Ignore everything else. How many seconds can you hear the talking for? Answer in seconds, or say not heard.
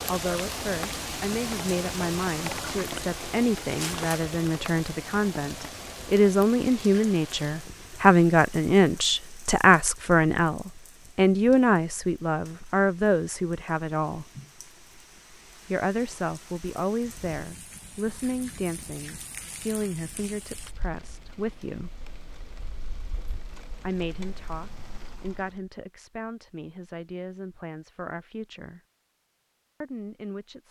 26 s.